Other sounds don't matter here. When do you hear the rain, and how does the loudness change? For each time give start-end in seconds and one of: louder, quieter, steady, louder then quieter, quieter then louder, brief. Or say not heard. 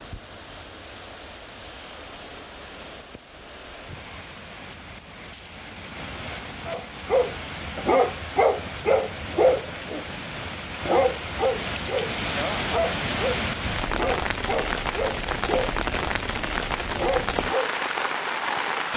0.0-18.9 louder.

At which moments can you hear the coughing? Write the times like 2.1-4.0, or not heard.
not heard.